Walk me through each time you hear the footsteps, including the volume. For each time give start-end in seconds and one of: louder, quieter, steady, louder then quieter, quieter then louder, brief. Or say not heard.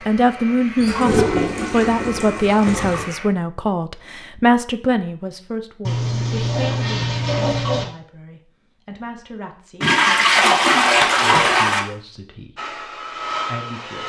not heard.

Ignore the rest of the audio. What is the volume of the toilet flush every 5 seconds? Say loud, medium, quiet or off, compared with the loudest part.
medium, medium, loud.